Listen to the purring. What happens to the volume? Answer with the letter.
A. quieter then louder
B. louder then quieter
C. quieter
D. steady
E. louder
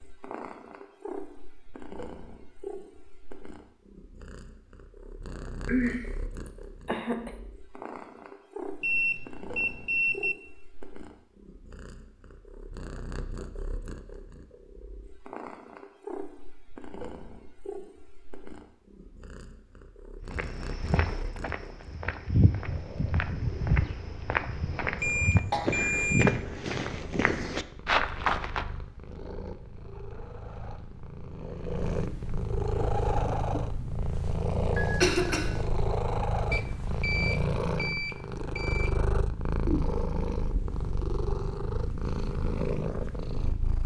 E.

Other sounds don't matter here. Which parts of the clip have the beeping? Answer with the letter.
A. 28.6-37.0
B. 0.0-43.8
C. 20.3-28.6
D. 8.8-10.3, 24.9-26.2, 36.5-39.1
D.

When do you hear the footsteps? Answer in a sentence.
You can hear the footsteps from 20.3 to 28.6 s.